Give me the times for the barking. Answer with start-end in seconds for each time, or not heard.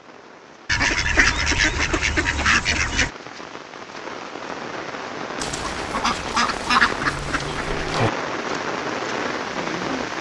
not heard.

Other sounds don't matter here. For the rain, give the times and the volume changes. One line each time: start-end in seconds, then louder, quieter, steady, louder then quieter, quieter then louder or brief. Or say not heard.
0.0-10.1 louder.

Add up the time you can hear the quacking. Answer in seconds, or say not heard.
5 s.